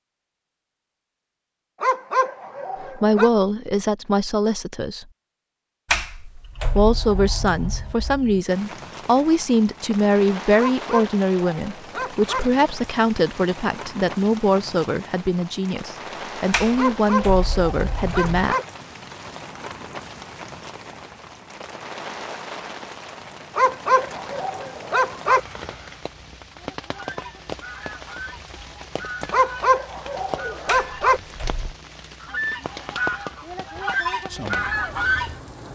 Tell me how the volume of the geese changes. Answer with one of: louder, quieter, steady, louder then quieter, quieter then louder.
louder.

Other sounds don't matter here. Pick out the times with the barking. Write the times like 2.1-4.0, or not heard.
1.8-3.3, 10.6-12.4, 16.8-18.6, 23.6-25.4, 29.3-31.2.